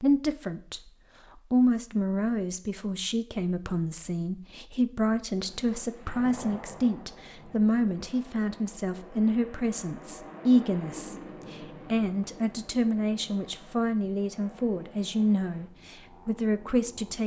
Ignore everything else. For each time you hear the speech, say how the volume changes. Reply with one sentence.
You can hear the speech from 0.0 to 17.2 s, at a steady volume.